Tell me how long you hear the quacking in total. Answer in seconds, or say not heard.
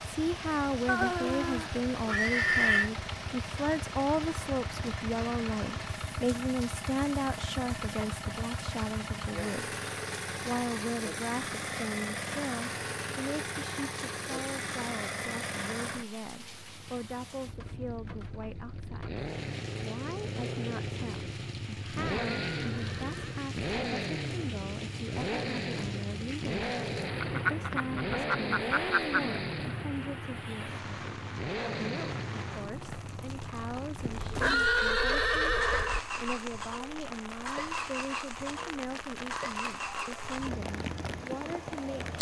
2 s.